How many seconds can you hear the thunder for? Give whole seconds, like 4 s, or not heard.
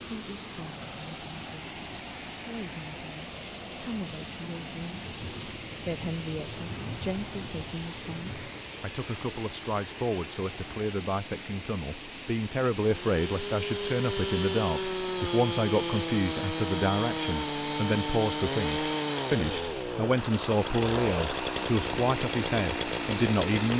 4 s.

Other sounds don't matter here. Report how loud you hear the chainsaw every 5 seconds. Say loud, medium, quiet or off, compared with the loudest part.
off, off, loud, loud, loud.